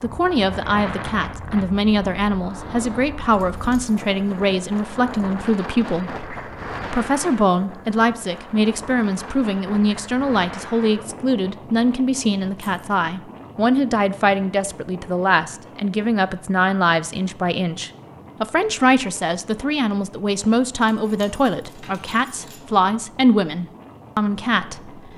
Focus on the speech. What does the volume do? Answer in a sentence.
The volume of the speech stays about the same.